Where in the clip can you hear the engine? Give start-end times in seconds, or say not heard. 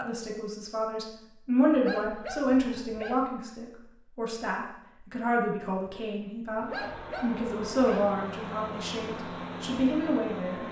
6.7-10.6.